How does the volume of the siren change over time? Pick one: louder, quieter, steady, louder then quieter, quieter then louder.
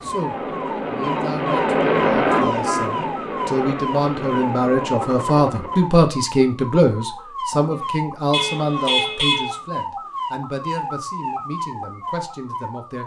steady.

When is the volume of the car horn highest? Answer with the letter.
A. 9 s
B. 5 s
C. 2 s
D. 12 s
A.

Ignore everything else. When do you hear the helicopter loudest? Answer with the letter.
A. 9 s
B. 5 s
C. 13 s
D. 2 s
D.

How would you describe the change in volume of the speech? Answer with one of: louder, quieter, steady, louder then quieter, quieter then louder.
louder then quieter.